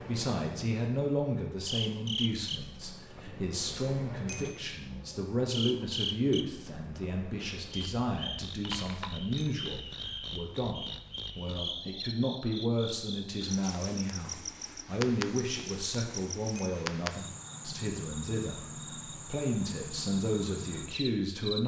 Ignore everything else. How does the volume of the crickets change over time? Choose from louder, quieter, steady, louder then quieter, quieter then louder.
steady.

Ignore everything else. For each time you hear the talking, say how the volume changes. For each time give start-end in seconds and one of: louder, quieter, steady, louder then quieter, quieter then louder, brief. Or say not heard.
0.1-21.6 steady.